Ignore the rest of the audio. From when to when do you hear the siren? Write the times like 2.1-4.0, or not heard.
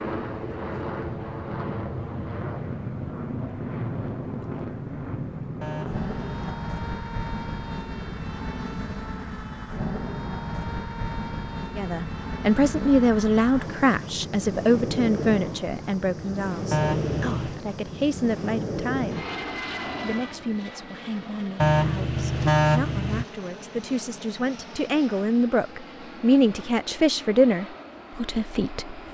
not heard.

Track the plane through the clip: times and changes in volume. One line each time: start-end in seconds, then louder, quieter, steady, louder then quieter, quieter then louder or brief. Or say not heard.
0.0-29.1 quieter.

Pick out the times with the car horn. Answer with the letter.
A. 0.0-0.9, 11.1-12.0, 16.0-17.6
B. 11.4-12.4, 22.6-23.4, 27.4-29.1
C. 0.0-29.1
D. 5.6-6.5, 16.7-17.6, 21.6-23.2
D.